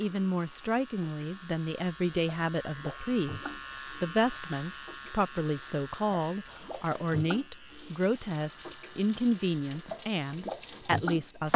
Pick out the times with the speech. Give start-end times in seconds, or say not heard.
0.0-11.5.